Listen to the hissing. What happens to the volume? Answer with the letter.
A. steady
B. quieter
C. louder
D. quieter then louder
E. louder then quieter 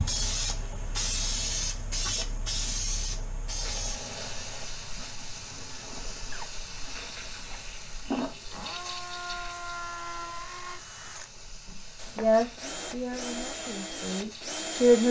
B.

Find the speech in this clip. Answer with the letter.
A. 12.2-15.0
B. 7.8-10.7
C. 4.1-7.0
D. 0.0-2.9
A.